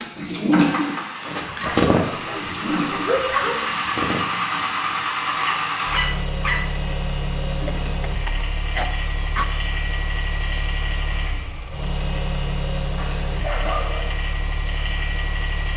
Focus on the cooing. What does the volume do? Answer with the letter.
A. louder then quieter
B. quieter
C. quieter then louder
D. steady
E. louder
B.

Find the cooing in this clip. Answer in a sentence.
You can hear the cooing from 0.0 to 4.4 s.